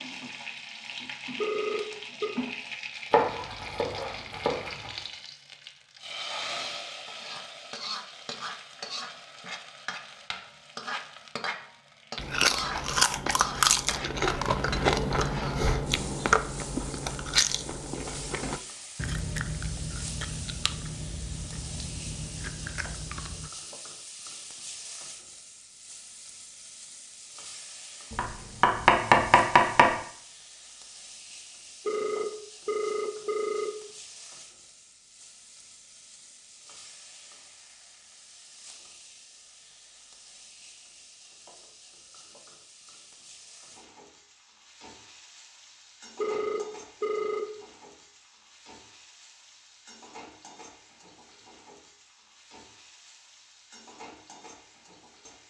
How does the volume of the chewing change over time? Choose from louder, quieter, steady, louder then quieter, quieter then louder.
quieter.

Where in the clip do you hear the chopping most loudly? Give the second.
29 s.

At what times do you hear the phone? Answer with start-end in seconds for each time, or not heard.
1.4-2.4, 31.9-33.7, 46.1-47.4.